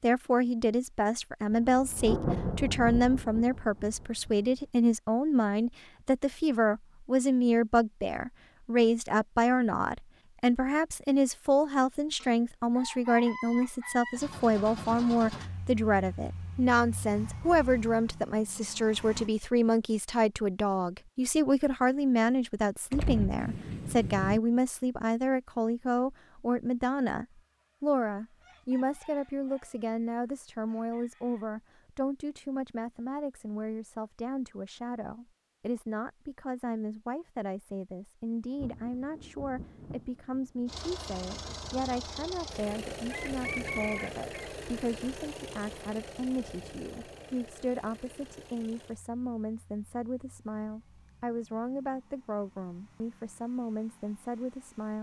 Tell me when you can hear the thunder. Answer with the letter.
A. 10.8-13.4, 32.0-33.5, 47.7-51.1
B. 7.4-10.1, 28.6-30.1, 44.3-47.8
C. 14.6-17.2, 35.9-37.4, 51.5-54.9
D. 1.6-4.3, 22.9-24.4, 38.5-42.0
D.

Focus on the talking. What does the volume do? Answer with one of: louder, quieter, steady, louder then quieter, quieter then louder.
quieter.